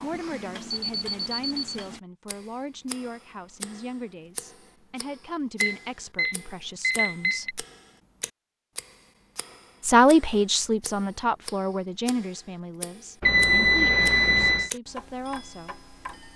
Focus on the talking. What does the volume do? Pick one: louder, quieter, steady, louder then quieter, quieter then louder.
louder then quieter.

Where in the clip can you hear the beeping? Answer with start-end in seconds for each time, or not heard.
0.7-1.8, 5.6-7.5, 13.2-14.7.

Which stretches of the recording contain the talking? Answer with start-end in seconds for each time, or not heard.
0.0-7.7, 9.8-15.8.